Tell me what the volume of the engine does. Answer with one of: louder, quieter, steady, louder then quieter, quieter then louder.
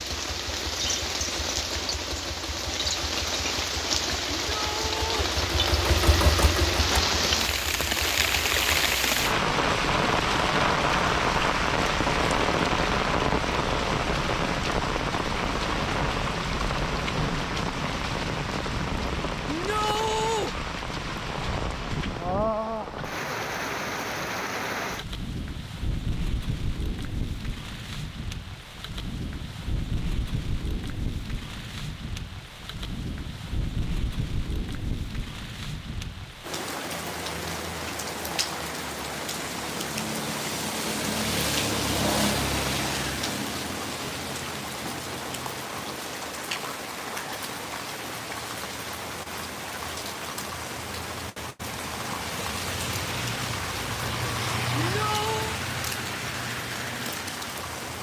louder then quieter.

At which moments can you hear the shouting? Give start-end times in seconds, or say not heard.
4.5-5.3, 19.4-20.5, 54.8-55.6.